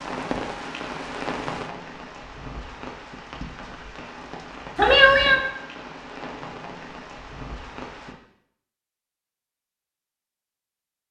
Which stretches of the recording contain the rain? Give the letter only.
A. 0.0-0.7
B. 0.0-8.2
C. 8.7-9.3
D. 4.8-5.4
B.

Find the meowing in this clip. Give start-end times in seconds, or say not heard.
4.8-5.4.